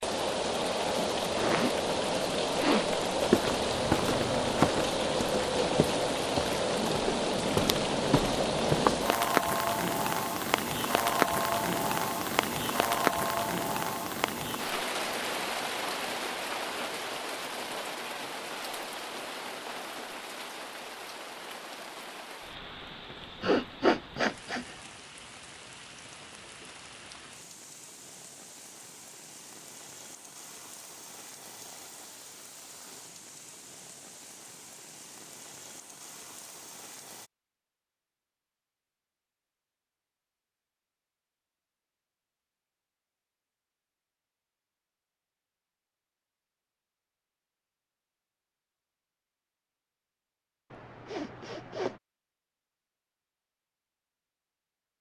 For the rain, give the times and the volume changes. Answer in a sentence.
You can hear the rain from 0.0 to 37.3 s, getting quieter.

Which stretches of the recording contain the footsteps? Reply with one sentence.
The footsteps can be heard from 3.2 to 9.0 s.